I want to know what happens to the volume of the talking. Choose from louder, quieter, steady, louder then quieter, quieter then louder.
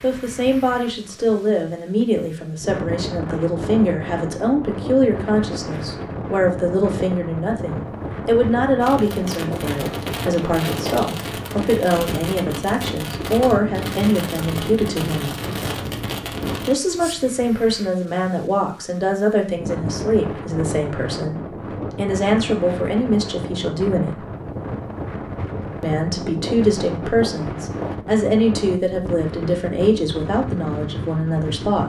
steady.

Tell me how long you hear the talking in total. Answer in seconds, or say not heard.
29 s.